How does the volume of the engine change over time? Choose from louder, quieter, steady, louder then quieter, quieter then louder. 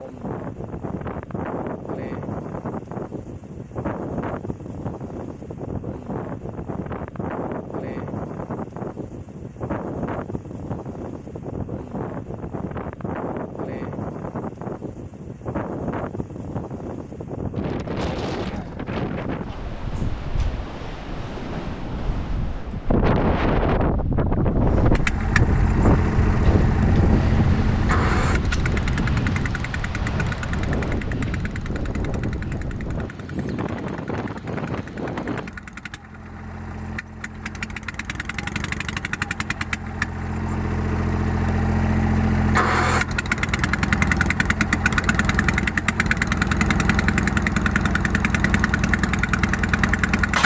quieter then louder.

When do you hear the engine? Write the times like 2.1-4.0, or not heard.
24.9-50.3.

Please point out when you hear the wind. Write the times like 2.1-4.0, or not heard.
0.0-35.5.